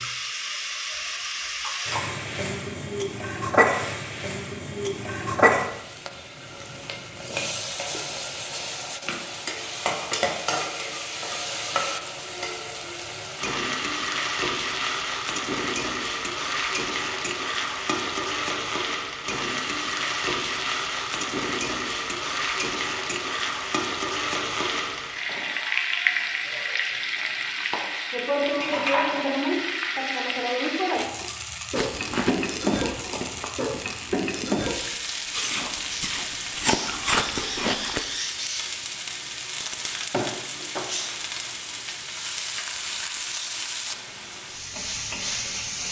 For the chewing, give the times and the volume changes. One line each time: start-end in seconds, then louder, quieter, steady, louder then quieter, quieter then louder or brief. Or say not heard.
31.8-38.0 quieter then louder.